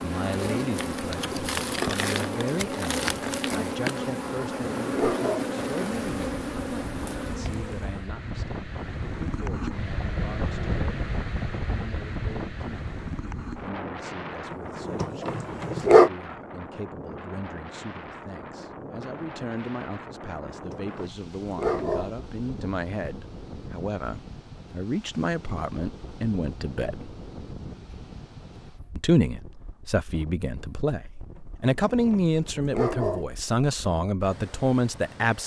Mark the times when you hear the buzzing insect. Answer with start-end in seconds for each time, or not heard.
0.0-8.1.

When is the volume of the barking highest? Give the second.
16 s.